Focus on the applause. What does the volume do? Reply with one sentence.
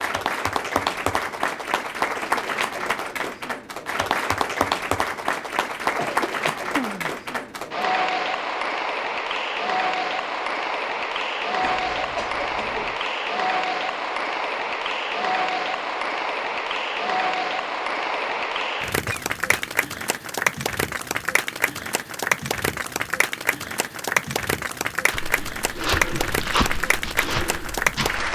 The loudness of the applause stays about the same.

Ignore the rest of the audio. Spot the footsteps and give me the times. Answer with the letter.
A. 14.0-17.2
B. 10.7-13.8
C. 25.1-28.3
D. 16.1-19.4
C.